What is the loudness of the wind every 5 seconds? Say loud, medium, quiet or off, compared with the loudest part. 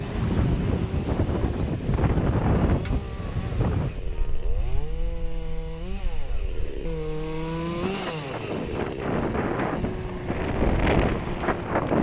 loud, medium, loud.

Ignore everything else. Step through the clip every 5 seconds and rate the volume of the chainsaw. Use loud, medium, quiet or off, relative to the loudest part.
medium, loud, medium.